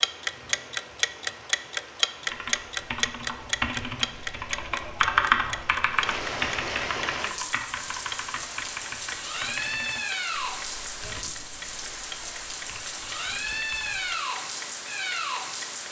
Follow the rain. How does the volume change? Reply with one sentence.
The volume of the rain goes up.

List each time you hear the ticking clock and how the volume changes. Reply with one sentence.
The ticking clock can be heard from 0.0 to 15.8 s, getting quieter.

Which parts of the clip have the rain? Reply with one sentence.
You can hear the rain from 0.0 to 15.8 s.